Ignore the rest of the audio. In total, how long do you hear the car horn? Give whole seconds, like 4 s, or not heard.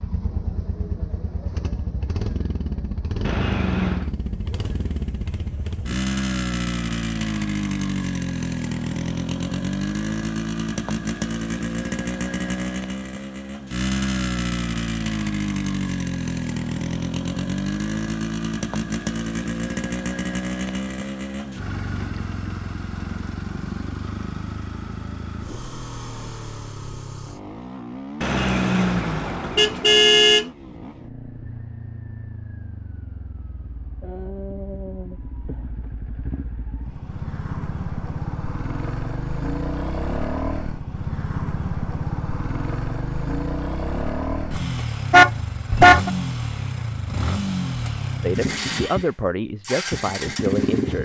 4 s.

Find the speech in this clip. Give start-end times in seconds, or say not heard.
48.2-51.0.